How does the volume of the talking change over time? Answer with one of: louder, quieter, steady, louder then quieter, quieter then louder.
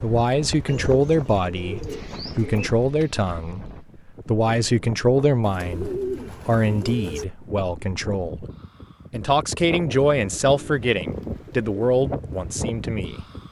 steady.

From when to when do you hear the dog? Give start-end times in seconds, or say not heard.
not heard.